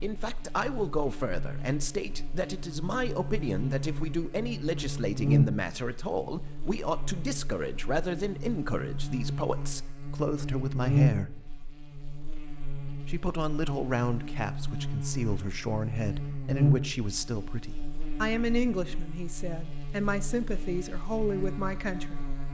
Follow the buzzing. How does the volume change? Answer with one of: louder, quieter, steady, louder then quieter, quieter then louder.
louder then quieter.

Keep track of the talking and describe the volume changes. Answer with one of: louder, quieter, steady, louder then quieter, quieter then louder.
steady.